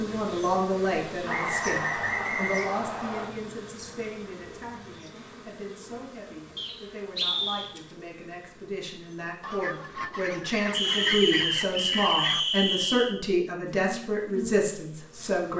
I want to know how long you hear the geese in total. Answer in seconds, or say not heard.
3 s.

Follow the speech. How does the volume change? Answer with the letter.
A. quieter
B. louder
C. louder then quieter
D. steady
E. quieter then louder
E.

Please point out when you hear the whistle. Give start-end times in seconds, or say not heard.
1.2-3.2, 6.5-7.7, 10.7-13.2.